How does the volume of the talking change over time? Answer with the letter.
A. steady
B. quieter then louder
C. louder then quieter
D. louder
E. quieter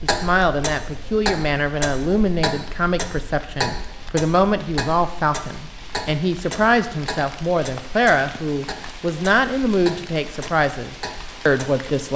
A.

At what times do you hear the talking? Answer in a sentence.
The talking can be heard from 0.0 to 12.1 s.